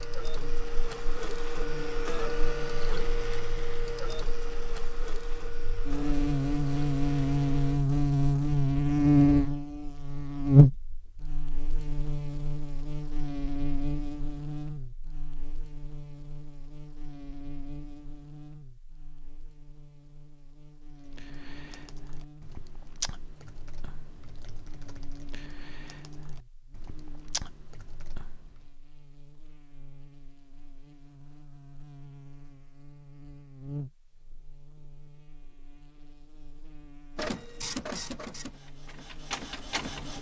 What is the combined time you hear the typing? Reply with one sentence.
The typing can be heard for 8 seconds in total.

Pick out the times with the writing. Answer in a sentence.
You can't hear the writing here.